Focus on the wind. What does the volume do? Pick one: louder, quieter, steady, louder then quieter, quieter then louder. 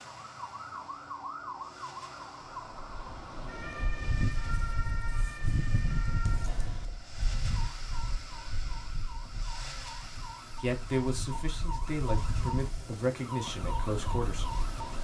quieter then louder.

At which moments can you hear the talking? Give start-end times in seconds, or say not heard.
10.6-14.6.